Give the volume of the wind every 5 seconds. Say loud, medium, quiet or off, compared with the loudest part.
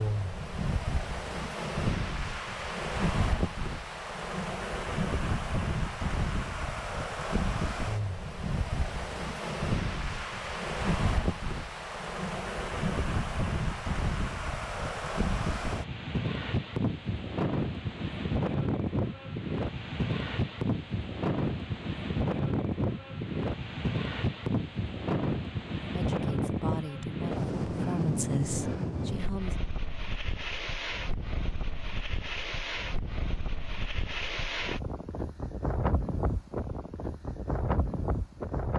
loud, loud, loud, loud, loud, loud, medium, loud.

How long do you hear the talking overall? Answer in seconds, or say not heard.
4 s.